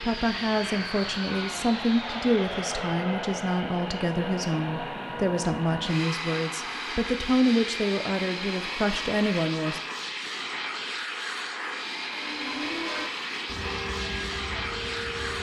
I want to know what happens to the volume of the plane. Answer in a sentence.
The loudness of the plane stays about the same.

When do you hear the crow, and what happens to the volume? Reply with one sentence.
The crow can't be heard in this clip.